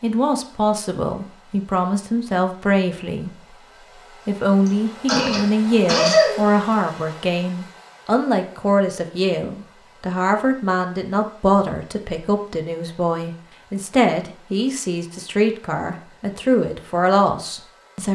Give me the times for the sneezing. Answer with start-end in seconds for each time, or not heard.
4.7-6.4.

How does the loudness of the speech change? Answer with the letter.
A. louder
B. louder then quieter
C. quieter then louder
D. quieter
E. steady
E.